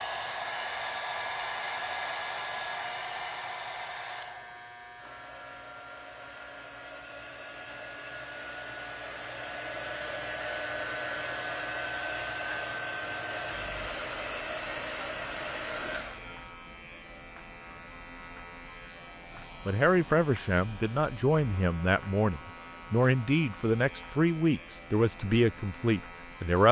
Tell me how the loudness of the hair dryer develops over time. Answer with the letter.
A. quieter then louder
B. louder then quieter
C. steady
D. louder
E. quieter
A.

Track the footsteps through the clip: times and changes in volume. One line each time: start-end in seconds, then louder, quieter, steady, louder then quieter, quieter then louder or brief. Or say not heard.
not heard.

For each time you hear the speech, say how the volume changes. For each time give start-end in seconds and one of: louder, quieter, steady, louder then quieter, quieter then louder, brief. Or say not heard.
19.6-26.6 steady.